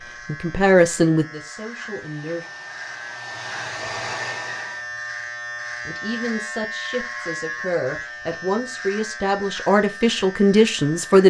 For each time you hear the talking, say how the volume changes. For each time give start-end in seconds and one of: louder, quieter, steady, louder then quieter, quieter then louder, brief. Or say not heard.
0.2-2.5 brief
5.8-11.2 louder.